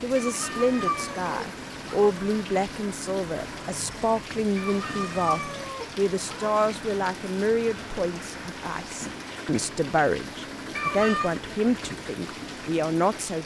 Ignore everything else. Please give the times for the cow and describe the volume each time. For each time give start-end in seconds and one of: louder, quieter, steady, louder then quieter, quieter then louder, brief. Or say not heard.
not heard.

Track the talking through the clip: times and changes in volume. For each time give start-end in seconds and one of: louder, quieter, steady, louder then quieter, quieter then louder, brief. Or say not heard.
0.0-13.4 steady.